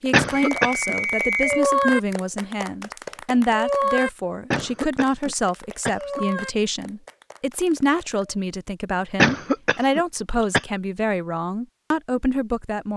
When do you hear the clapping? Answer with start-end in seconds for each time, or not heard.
0.1-8.3.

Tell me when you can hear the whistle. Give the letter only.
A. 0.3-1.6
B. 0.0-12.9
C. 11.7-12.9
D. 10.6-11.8
A.